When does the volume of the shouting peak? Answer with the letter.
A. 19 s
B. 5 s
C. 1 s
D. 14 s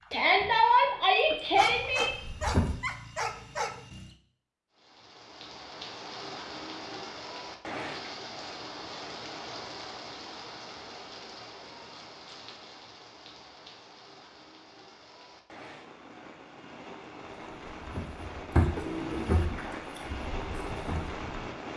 C.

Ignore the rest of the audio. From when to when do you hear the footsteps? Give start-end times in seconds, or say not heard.
not heard.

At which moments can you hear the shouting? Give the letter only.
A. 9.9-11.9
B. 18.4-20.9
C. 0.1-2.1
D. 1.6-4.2
C.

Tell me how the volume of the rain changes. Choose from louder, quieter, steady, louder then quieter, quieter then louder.
quieter then louder.